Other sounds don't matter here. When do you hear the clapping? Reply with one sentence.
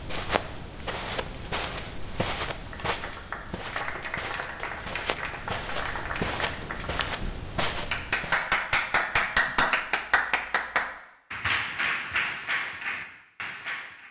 The clapping can be heard from 2.5 to 14.0 s.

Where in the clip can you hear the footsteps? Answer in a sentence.
You can hear the footsteps from 0.0 to 8.5 s.